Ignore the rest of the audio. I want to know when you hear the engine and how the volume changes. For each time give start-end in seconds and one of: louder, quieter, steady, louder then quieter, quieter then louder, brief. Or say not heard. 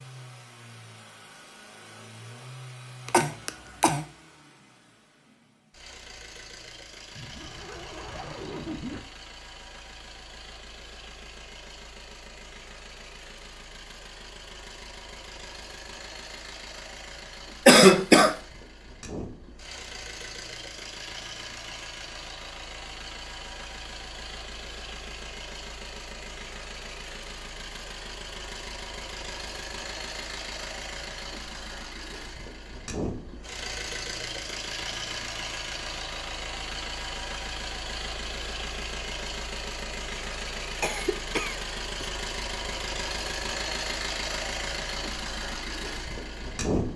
0.0-46.9 louder.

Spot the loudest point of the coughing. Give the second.
18 s.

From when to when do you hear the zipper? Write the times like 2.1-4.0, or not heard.
7.2-9.0.